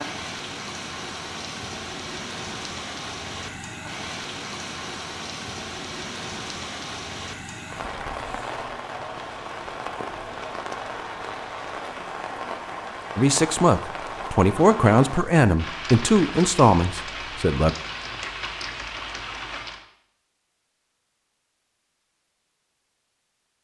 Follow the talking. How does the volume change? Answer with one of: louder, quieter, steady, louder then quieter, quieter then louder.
steady.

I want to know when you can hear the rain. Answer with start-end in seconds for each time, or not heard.
0.0-19.9.